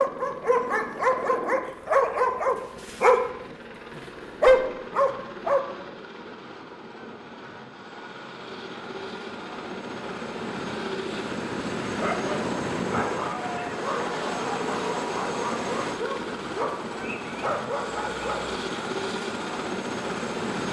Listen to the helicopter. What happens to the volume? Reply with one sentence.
The loudness of the helicopter goes up.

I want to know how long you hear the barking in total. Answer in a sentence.
You can hear the barking for 12 seconds altogether.